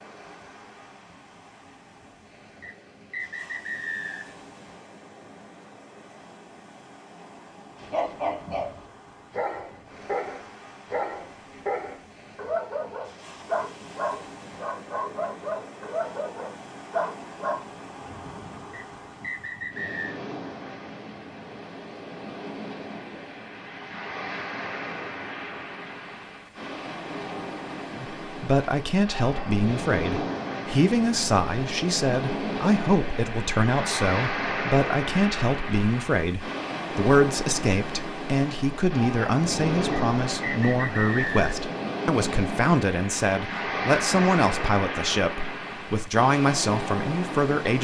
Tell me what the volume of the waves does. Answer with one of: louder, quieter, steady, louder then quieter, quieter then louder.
louder.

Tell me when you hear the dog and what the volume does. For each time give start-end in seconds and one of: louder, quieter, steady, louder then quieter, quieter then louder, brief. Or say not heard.
7.8-17.6 steady.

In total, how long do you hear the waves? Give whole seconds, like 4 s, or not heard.
48 s.